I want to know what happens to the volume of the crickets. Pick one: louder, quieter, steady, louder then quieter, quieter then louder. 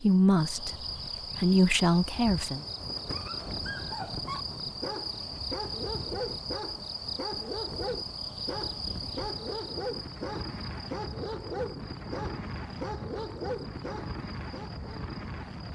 quieter.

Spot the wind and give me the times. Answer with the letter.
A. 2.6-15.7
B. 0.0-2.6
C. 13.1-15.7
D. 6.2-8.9
A.